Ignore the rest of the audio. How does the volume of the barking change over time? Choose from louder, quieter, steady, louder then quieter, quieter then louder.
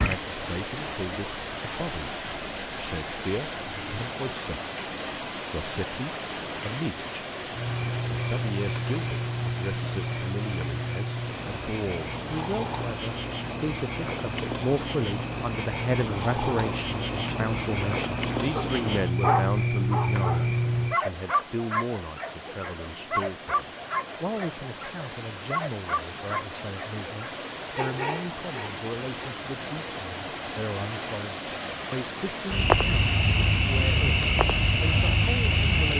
quieter.